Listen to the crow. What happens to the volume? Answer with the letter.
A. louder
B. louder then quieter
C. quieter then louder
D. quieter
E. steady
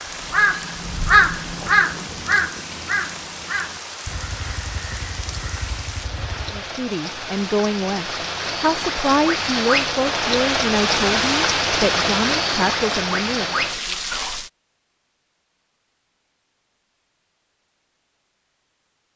D.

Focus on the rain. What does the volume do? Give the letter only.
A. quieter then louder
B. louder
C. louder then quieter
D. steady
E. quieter
B.